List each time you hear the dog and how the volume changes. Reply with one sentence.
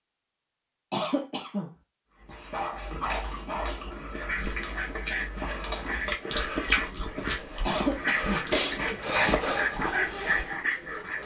You can hear the dog from 2.2 to 11.2 s, getting louder.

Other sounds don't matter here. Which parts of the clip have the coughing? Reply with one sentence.
The coughing can be heard from 0.9 to 1.7 s and from 7.7 to 8.4 s.